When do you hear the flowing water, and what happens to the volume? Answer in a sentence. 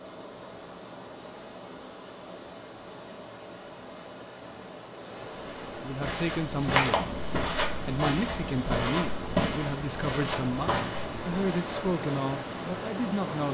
You can hear the flowing water from 0.0 to 13.4 s, getting louder.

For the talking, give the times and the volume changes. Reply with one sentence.
You can hear the talking from 5.8 to 13.4 s, at a steady volume.